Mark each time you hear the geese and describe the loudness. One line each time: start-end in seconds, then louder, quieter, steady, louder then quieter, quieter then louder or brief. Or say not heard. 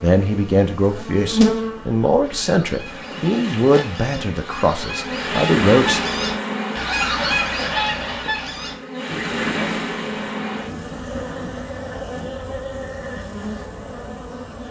2.2-12.3 louder then quieter.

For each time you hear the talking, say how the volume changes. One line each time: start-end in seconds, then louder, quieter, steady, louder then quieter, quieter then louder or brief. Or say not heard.
0.0-6.0 steady.